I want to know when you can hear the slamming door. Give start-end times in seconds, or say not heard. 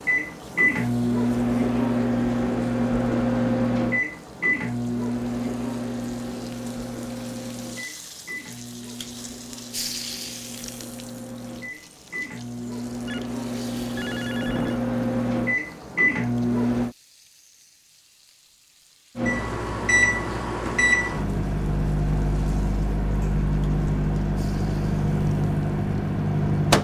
not heard.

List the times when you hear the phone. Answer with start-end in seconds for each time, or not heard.
13.1-14.8.